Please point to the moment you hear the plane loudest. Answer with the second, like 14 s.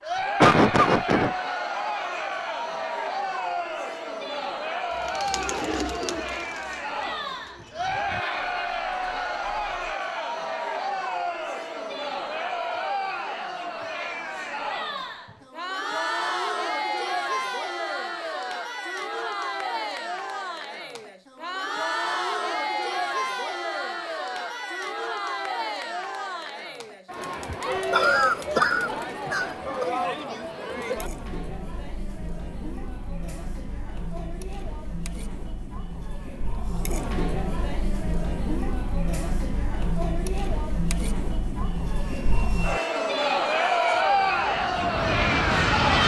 46 s.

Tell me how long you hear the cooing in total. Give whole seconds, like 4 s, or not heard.
5 s.